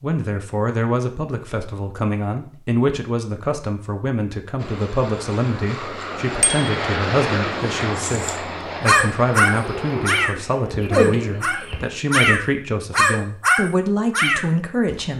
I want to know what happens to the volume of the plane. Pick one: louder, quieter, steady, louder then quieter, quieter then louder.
louder then quieter.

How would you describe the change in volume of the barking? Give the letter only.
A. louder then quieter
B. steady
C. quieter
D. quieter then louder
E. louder
D.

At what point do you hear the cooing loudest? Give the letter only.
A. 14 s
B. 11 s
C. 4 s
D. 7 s
B.